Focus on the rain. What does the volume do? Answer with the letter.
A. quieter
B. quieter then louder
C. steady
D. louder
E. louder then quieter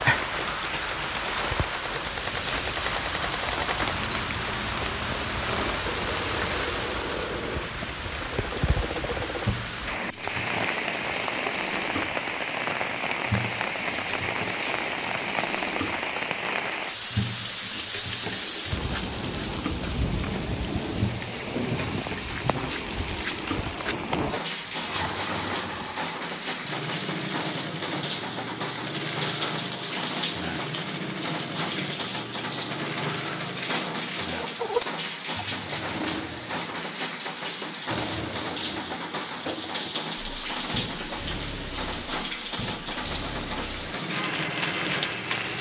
C.